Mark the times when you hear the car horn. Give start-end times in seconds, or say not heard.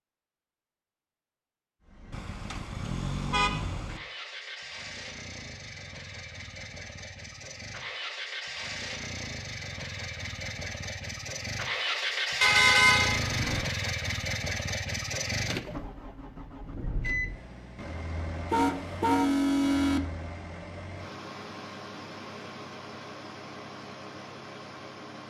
2.1-4.0, 12.4-13.7, 18.5-20.0.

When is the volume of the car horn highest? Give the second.
13 s.